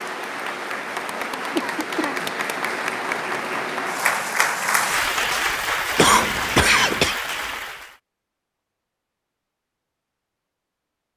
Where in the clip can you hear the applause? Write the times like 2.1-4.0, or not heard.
0.0-8.0.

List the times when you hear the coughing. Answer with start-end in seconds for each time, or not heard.
1.6-2.3, 6.0-7.2.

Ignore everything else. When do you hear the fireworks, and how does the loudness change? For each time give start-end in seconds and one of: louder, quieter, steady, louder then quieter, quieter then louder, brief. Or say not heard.
not heard.